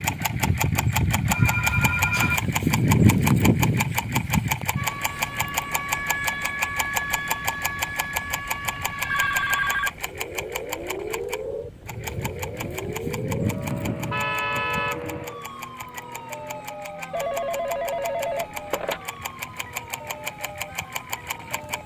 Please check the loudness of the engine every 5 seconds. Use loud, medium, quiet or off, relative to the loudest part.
loud, medium, medium, quiet, quiet.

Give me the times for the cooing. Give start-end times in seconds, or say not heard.
not heard.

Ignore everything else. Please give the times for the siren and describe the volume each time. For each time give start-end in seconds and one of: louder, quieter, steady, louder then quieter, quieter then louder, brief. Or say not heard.
4.8-21.8 quieter.